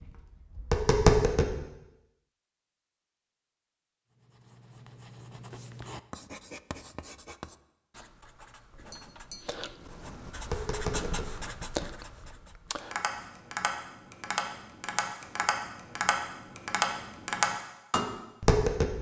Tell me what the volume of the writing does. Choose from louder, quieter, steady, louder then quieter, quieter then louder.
quieter then louder.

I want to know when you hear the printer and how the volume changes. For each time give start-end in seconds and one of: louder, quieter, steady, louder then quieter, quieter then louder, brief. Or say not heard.
not heard.